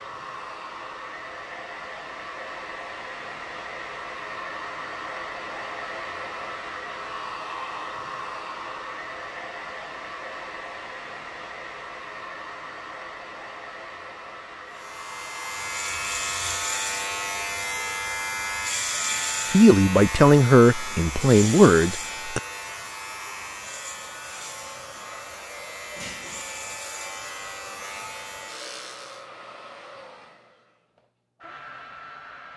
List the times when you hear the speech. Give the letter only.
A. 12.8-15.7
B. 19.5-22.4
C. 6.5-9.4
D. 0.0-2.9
B.